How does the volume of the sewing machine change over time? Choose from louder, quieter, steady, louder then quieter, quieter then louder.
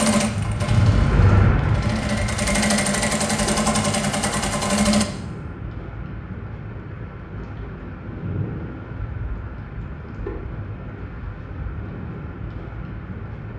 louder.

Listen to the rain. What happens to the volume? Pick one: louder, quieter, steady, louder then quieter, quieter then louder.
quieter.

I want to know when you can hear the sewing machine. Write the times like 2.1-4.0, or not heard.
0.0-5.0.